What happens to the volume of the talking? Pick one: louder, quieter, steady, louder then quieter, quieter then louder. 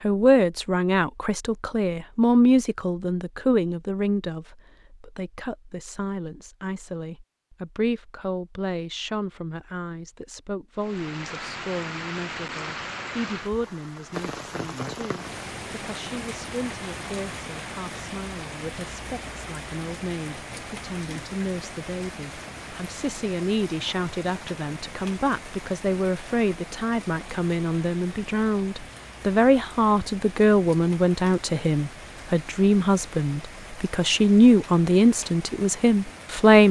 quieter then louder.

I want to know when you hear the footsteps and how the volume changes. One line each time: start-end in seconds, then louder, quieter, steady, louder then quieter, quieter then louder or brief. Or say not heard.
not heard.